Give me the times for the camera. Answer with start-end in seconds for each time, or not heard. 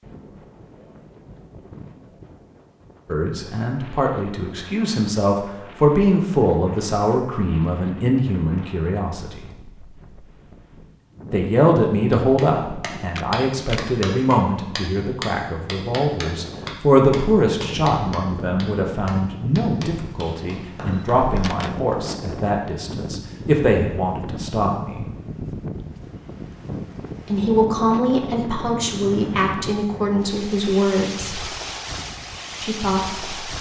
13.2-13.8, 20.9-21.8.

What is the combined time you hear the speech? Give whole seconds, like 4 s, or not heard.
25 s.